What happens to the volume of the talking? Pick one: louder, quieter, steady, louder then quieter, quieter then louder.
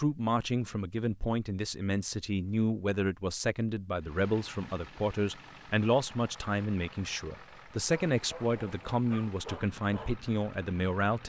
steady.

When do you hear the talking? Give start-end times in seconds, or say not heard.
0.0-11.2.